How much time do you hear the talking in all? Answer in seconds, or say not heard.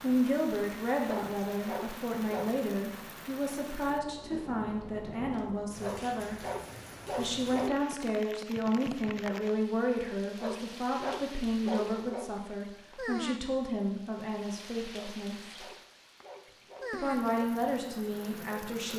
17 s.